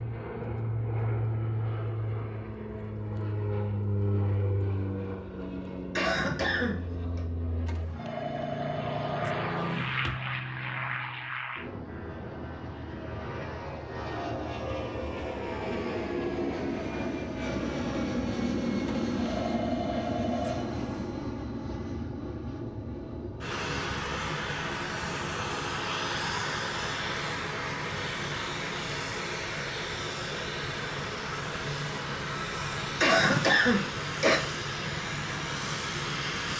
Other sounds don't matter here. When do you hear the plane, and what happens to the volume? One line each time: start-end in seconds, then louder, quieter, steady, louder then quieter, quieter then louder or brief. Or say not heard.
0.0-36.5 steady.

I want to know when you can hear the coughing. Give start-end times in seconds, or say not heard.
6.0-7.2, 33.0-34.4.